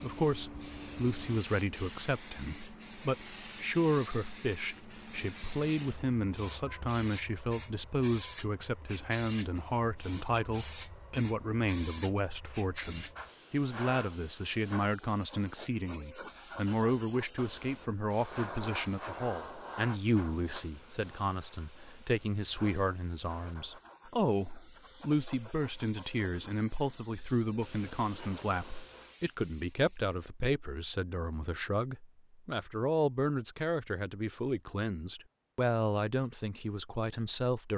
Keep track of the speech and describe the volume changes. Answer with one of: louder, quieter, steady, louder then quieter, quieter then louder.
steady.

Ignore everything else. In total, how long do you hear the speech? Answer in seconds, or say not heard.
38 s.